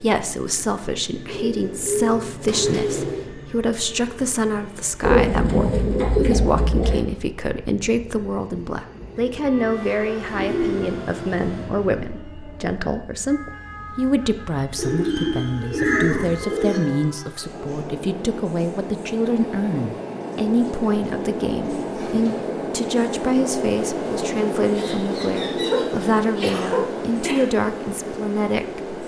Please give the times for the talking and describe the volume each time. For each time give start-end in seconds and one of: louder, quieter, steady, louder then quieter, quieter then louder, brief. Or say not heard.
0.0-29.0 steady.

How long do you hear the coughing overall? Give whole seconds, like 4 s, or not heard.
2 s.